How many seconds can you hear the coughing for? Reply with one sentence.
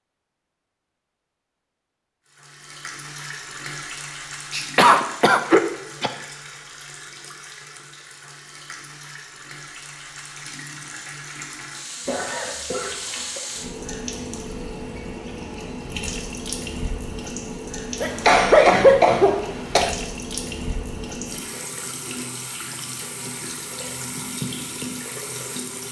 You can hear the coughing for 5 seconds altogether.